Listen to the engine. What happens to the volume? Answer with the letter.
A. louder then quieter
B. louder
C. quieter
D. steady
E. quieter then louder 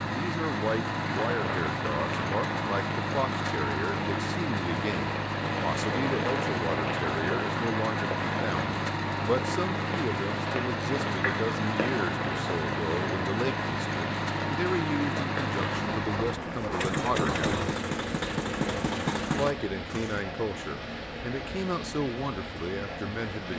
D.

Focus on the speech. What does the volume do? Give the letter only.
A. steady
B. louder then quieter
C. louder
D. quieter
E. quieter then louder
A.